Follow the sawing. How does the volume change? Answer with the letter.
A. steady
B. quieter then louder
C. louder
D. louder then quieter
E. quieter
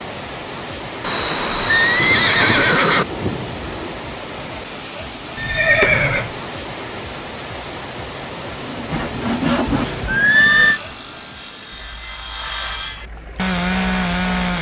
B.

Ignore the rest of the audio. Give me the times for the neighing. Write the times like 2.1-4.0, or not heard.
1.0-3.0, 5.3-6.3, 10.1-10.8.